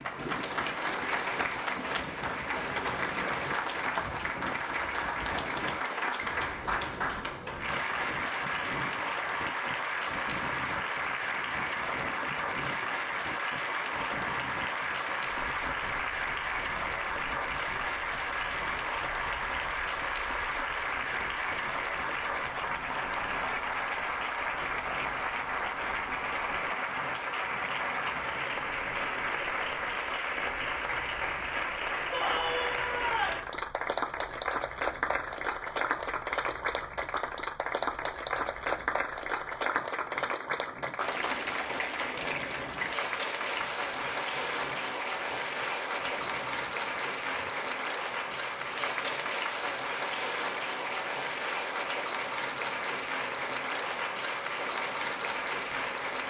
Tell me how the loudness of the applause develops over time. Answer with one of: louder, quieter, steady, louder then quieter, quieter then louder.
steady.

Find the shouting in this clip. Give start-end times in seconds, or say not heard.
32.1-33.5.